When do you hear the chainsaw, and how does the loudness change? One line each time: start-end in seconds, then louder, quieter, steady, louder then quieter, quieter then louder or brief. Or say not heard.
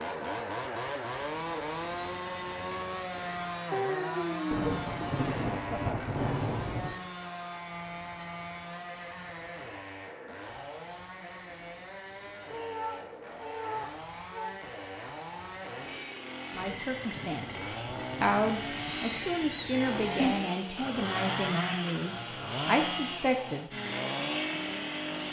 0.0-25.2 quieter then louder.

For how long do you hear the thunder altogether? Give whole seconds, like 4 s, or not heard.
6 s.